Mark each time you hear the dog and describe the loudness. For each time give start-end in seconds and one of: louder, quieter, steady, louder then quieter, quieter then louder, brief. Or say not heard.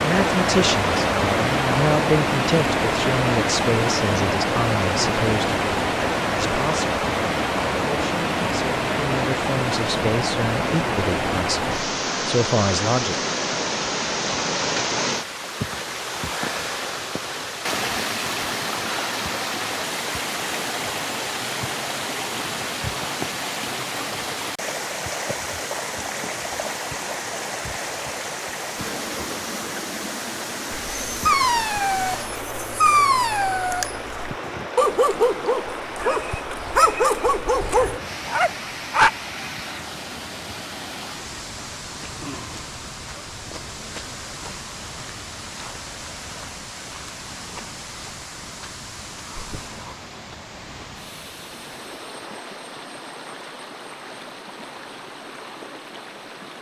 30.8-39.1 steady.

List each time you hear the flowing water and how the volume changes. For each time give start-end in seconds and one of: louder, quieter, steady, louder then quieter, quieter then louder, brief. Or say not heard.
0.0-56.5 quieter.